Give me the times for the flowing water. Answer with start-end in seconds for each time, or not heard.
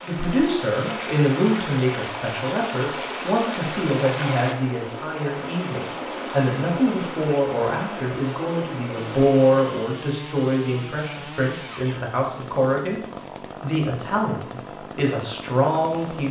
0.0-9.6.